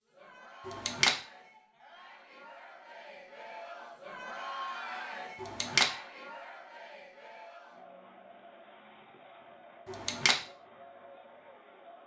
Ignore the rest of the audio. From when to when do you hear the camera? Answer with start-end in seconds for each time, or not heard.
0.7-1.1, 5.4-5.9, 9.8-10.3.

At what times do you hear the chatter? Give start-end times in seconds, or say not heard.
0.0-12.0.